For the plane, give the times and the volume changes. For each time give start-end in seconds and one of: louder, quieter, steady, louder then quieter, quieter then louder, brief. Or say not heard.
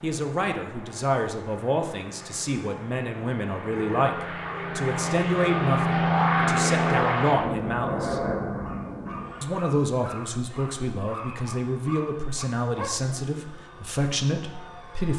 0.0-15.1 louder then quieter.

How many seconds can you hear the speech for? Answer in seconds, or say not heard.
14 s.